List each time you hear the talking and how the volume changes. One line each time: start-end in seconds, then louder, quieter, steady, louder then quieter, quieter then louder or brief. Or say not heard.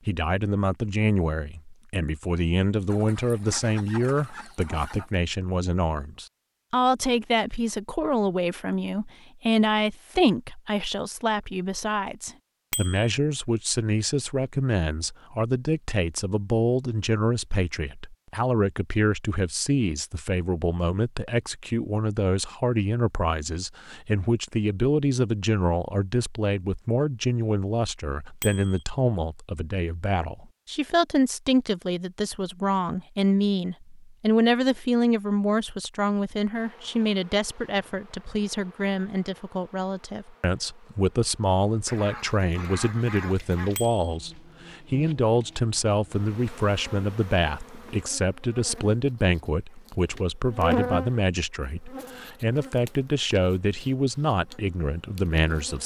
0.1-55.8 steady.